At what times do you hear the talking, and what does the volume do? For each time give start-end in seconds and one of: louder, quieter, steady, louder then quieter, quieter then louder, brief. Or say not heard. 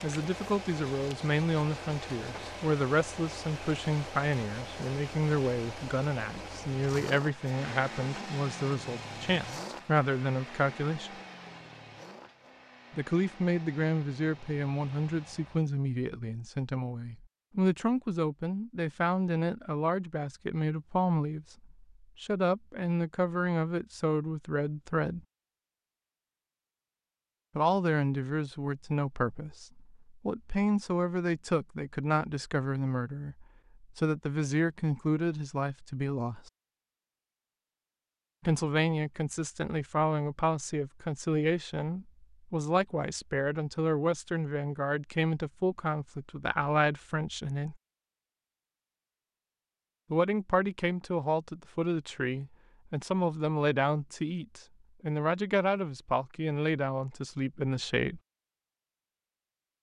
0.0-11.1 steady
12.9-25.2 steady
27.6-36.5 steady
38.5-47.8 steady
50.1-58.2 steady.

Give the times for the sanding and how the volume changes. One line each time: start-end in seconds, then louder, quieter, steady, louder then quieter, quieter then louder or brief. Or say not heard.
not heard.